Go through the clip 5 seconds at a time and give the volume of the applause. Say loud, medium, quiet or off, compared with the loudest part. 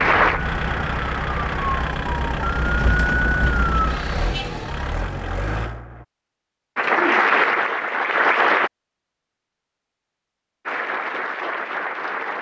medium, loud, medium.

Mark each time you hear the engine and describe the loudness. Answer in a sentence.
You can hear the engine from 0.2 to 6.0 s, at a steady volume.